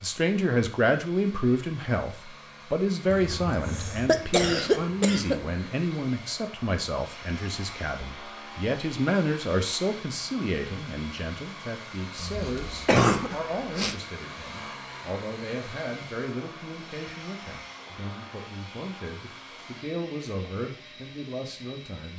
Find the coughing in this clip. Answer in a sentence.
The coughing can be heard from 3.1 to 5.4 s and from 12.2 to 13.9 s.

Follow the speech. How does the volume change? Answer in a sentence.
The volume of the speech goes down.